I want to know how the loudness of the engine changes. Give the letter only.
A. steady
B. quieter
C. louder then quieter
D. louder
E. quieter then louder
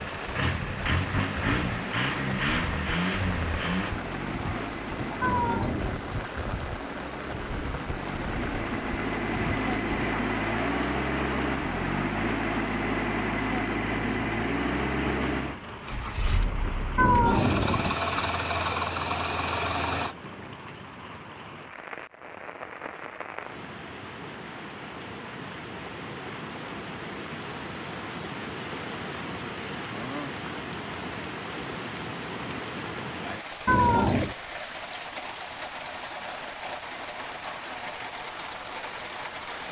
E.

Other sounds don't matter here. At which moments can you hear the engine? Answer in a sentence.
You can hear the engine from 0.0 to 20.1 s.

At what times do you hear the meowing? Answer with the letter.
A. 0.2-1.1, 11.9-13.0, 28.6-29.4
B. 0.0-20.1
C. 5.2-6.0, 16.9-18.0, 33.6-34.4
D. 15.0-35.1
C.